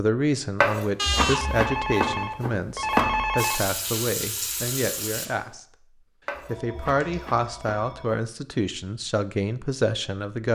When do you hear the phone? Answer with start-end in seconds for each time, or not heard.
0.9-3.7, 6.3-8.1.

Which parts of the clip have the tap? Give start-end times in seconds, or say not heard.
3.4-5.3.